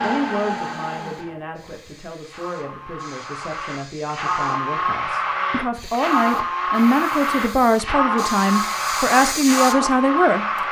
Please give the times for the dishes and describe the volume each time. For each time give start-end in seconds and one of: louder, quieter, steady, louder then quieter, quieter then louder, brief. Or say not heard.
not heard.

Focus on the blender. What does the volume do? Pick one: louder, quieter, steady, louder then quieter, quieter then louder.
louder.